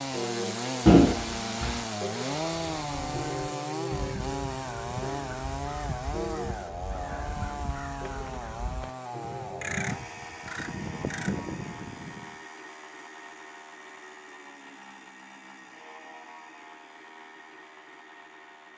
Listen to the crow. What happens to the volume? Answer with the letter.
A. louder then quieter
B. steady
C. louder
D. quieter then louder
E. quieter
C.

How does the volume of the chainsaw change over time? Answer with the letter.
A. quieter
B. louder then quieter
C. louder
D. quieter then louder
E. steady
A.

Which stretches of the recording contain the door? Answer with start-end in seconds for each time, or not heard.
0.8-1.8.